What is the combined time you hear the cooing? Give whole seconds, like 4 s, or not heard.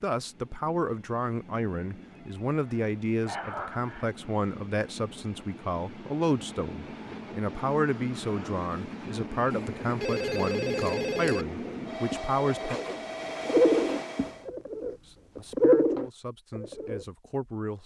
5 s.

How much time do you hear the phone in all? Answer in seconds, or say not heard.
4 s.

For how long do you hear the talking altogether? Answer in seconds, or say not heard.
16 s.